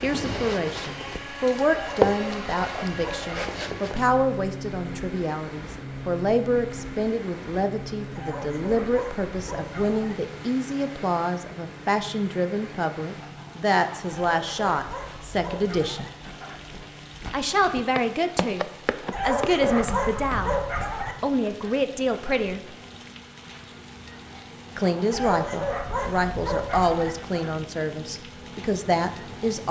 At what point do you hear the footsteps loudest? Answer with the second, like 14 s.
2 s.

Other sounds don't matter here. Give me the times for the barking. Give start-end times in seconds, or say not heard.
1.7-3.4, 8.2-10.2, 14.1-16.1, 19.1-21.1, 25.1-27.1.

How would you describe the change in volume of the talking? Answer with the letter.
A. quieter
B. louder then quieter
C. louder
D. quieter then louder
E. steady
E.